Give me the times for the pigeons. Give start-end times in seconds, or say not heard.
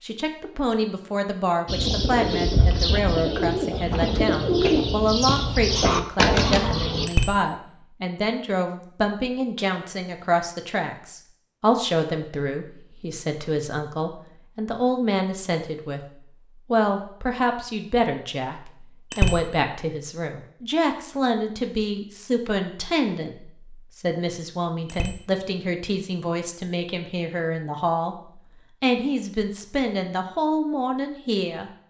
1.6-7.1.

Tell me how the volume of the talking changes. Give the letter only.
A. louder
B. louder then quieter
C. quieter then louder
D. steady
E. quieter
D.